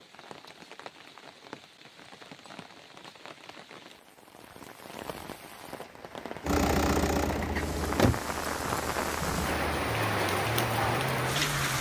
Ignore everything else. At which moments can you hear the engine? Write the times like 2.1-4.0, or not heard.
6.4-11.7.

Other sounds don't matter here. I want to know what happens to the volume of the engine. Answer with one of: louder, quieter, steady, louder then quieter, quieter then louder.
quieter then louder.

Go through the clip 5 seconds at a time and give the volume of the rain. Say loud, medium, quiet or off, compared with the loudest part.
quiet, medium, loud.